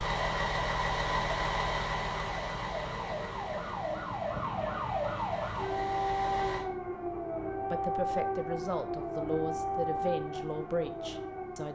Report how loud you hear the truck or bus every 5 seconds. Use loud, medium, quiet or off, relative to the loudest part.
loud, medium, off.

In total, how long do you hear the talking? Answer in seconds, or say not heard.
4 s.